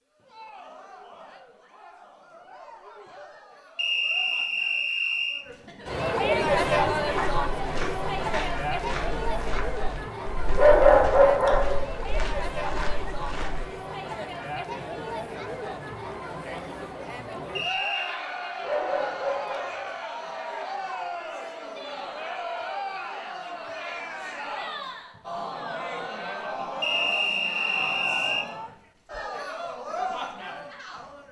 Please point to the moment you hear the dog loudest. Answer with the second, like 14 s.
11 s.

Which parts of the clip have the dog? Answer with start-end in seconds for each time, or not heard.
10.5-11.8, 18.6-19.9.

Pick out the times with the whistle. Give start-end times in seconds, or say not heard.
3.8-5.5, 17.6-18.2, 26.8-28.4.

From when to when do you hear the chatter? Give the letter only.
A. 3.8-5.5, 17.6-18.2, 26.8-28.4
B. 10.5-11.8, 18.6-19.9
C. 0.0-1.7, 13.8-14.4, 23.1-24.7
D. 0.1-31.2
D.